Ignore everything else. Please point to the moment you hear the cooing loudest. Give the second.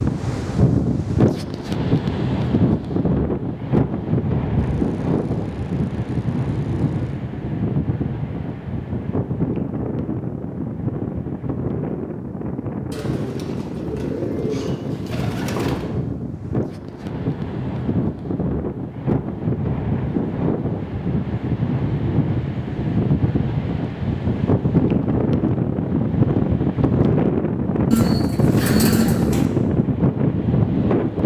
29 s.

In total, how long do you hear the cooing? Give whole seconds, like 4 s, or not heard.
7 s.